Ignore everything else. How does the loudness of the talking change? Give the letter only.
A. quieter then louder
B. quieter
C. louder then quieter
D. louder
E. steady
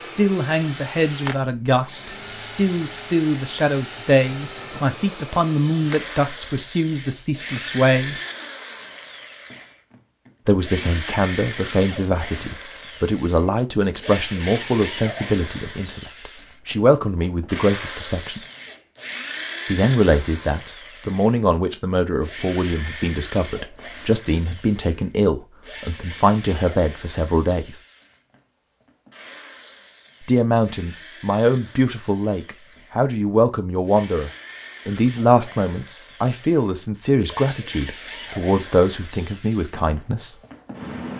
E.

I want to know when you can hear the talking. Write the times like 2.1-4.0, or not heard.
0.0-8.2, 10.4-18.4, 19.6-27.8, 30.2-40.4.